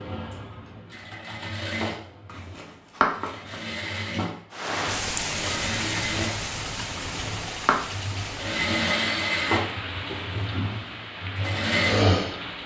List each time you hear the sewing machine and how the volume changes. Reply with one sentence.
You can hear the sewing machine from 0.0 to 12.4 s, getting louder.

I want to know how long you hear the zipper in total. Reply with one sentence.
You can hear the zipper for 2 seconds altogether.